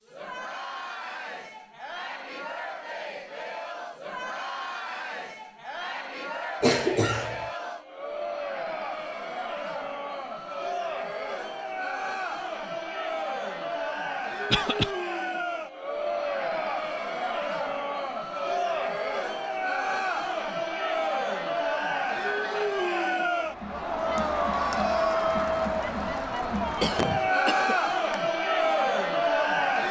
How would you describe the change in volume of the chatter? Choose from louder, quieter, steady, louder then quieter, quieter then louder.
louder.